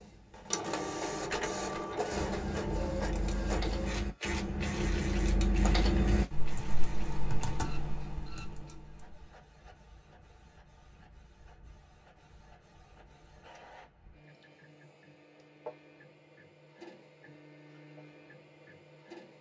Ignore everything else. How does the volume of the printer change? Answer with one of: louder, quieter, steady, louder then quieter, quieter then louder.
quieter then louder.